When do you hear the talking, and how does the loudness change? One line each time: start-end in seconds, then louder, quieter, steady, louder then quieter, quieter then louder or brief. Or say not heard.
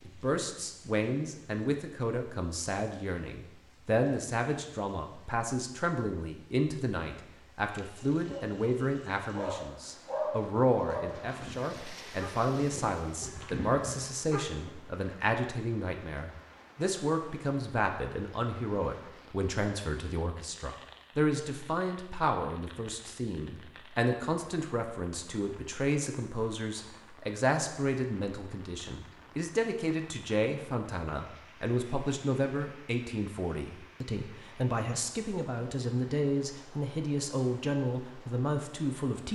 0.1-39.3 steady.